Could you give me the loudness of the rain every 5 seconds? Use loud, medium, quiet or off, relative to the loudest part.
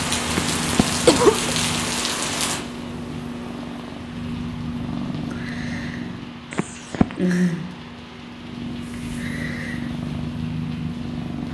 loud, quiet, quiet.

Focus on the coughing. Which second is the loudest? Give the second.
1 s.